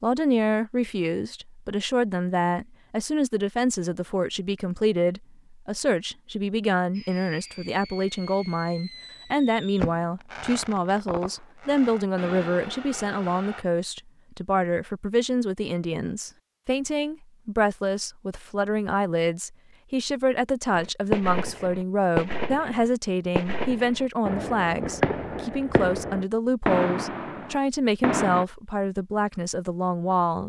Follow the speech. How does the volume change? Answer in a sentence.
The loudness of the speech stays about the same.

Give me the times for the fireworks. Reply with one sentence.
The fireworks can be heard from 6.9 to 13.7 s and from 20.8 to 28.4 s.